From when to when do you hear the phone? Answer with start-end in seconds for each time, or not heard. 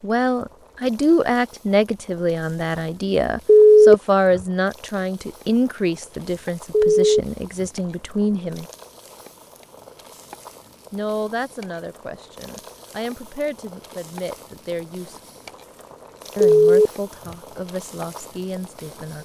3.5-4.4, 6.7-7.7, 16.4-17.4.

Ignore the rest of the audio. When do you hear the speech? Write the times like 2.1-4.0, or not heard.
0.0-8.7, 10.9-15.2, 16.4-19.1.